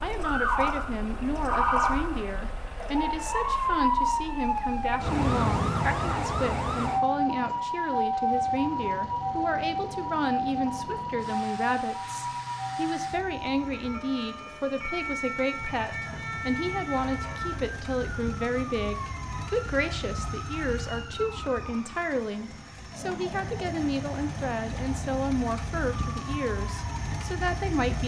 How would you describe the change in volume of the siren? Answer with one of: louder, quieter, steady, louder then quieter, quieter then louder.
quieter.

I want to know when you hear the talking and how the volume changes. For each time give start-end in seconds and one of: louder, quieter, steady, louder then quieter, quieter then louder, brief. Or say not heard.
0.0-28.0 steady.